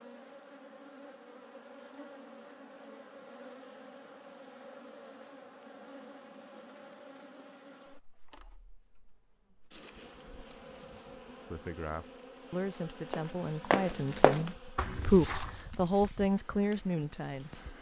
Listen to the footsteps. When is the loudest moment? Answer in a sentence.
The volume of the footsteps peaks at 14 seconds.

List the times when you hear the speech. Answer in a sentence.
You can hear the speech from 11.5 to 17.6 s.